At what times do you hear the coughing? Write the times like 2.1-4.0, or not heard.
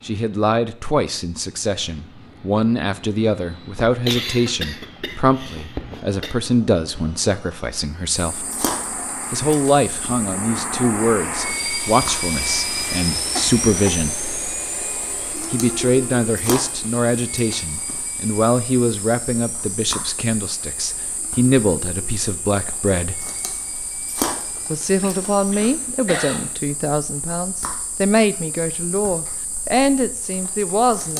3.9-6.3, 13.3-14.1, 25.0-26.6.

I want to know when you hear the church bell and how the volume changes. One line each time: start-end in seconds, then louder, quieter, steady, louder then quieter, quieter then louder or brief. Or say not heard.
not heard.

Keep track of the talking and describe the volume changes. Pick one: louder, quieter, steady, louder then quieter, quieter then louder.
steady.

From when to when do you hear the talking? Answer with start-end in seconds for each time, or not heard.
0.0-8.4, 9.3-14.2, 15.5-23.2, 24.7-31.1.